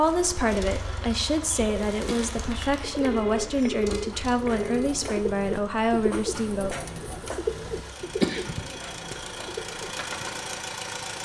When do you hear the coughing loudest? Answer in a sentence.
The loudest moment of the coughing is at 8 seconds.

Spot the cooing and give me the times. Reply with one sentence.
The cooing can be heard from 0.1 to 10.7 s.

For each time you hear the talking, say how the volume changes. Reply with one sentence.
You can hear the talking from 0.0 to 6.8 s, at a steady volume.